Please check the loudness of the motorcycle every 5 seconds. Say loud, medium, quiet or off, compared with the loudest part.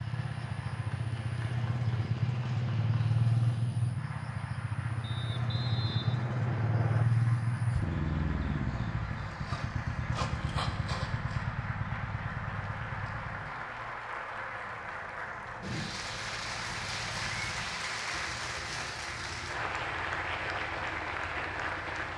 loud, loud, medium, quiet, quiet.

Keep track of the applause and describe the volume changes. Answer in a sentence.
The volume of the applause goes up.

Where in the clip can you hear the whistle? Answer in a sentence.
You can hear the whistle from 5.0 to 7.0 s.